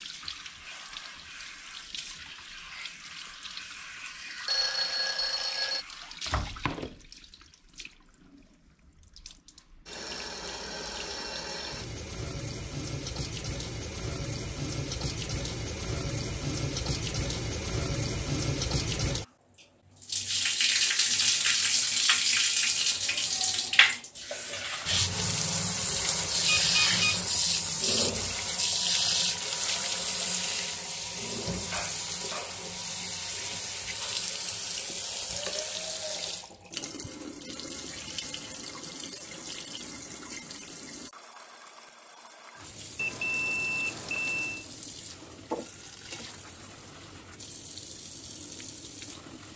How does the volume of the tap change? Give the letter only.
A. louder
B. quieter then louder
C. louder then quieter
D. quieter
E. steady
C.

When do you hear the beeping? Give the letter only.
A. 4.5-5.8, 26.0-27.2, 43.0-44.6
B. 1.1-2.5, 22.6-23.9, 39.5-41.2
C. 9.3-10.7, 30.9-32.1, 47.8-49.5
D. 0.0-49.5
A.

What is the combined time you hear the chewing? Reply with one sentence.
The chewing can't be heard in this clip.